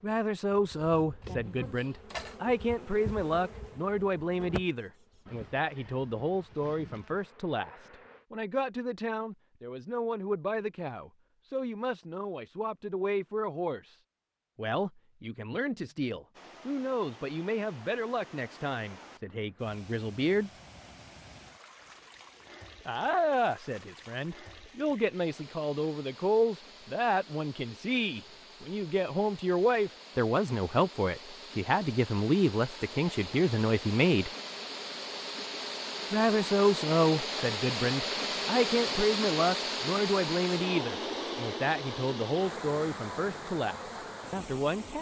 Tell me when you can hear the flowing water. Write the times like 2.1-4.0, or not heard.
16.3-44.9.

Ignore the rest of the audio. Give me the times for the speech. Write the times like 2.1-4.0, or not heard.
0.0-13.9, 14.6-20.5, 22.9-34.3, 36.1-44.9.